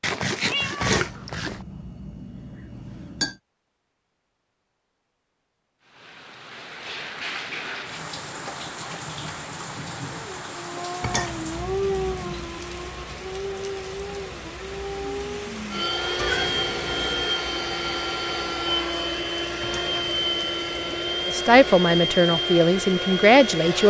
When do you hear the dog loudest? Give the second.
12 s.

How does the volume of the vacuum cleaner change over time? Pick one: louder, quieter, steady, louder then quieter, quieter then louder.
steady.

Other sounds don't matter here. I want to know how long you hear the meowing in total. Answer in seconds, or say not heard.
3 s.